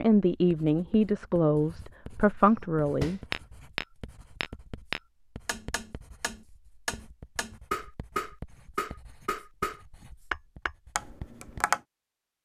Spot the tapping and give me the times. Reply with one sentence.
You can hear the tapping from 2.5 to 11.8 s.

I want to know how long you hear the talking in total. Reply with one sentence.
The talking can be heard for 3 seconds in total.